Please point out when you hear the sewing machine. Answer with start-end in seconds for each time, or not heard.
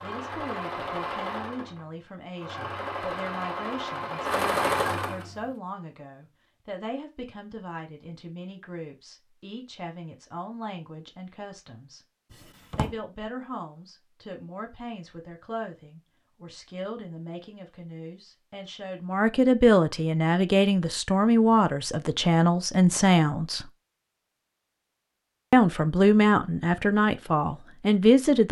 0.0-5.5.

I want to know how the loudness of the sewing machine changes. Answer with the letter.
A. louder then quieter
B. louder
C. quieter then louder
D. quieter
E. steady
C.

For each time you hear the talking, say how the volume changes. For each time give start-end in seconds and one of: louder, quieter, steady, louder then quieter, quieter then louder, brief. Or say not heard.
0.0-12.0 steady
12.8-23.6 louder
25.5-28.4 brief.